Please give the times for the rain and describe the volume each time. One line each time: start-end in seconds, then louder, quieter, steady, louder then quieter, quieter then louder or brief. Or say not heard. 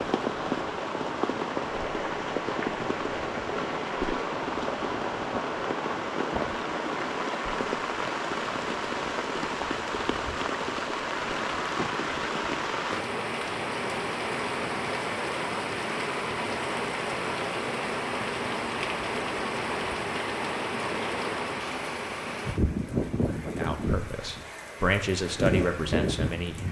0.0-26.6 steady.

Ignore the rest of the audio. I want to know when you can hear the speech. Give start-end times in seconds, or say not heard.
23.4-26.6.